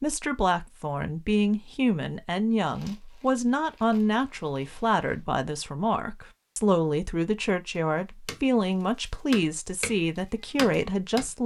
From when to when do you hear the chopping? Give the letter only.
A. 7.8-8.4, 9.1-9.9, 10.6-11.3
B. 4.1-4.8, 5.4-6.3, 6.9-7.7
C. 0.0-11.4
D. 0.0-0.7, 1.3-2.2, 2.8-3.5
A.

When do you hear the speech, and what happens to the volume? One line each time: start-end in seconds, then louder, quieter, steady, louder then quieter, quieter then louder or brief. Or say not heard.
0.0-11.4 steady.